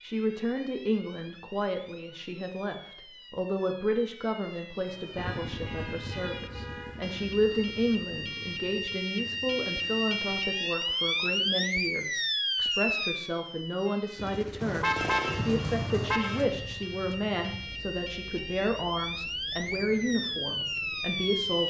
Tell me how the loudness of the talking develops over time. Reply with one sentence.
The loudness of the talking stays about the same.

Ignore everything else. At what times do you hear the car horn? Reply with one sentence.
The car horn can be heard from 4.8 to 7.2 s and from 14.6 to 16.5 s.